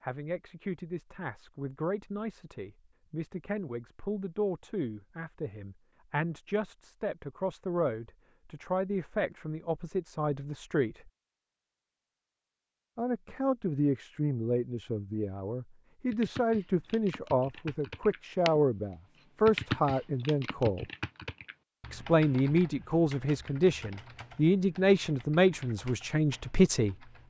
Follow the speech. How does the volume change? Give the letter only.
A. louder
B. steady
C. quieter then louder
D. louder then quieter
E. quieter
A.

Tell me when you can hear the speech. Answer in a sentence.
The speech can be heard from 0.0 to 11.1 s, from 12.9 to 20.9 s and from 21.9 to 27.2 s.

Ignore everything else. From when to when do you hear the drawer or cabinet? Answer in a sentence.
The drawer or cabinet can't be heard in this clip.